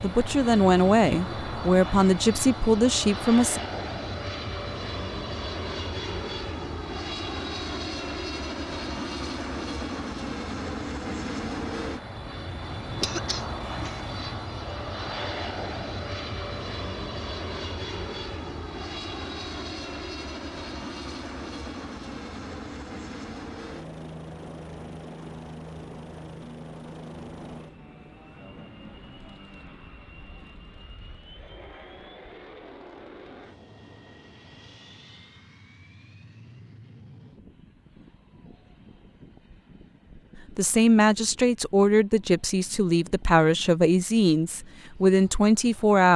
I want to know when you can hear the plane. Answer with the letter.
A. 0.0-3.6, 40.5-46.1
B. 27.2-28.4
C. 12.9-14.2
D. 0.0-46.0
D.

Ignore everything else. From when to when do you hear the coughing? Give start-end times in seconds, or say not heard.
12.9-14.2.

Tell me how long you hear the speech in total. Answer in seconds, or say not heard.
9 s.